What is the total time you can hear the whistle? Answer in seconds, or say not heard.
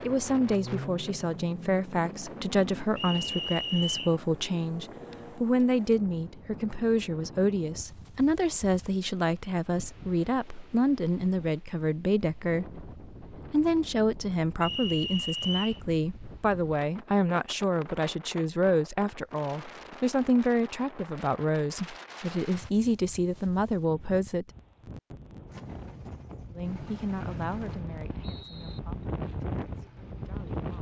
4 s.